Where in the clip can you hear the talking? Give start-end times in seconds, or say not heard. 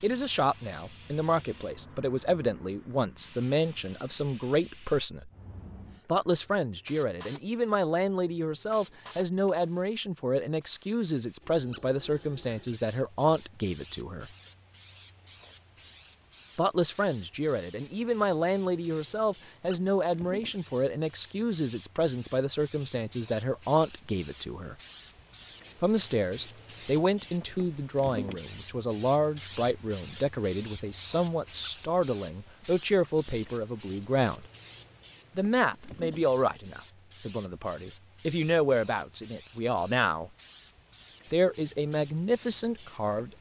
0.0-5.3, 6.0-14.3, 16.6-24.8, 25.8-34.5, 35.4-40.3, 41.3-43.3.